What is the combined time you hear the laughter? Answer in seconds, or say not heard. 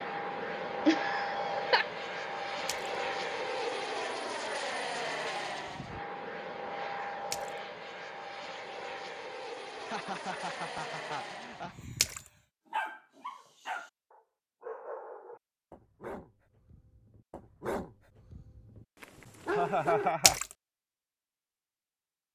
4 s.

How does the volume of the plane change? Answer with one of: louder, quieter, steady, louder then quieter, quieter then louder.
quieter.